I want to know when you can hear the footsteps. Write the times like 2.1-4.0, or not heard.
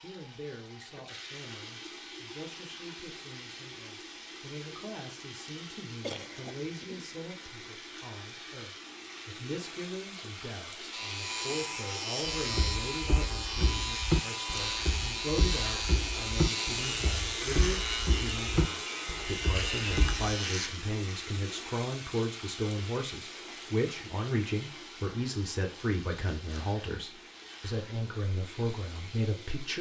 12.2-20.4.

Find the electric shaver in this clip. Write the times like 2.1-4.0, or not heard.
10.9-20.7.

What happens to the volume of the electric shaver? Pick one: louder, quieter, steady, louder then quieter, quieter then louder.
steady.